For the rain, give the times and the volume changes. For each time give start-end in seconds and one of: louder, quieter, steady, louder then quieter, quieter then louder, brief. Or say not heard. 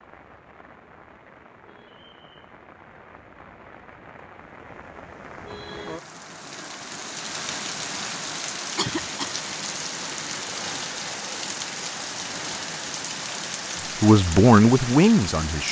0.0-15.6 louder.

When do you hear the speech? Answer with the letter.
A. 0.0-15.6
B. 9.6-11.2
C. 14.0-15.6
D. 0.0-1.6
C.